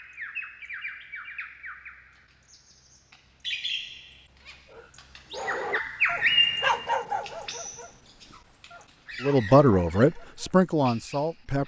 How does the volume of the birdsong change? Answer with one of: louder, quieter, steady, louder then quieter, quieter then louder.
louder then quieter.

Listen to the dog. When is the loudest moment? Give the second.
7 s.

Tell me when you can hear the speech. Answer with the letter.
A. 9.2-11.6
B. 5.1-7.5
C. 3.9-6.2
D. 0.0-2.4
A.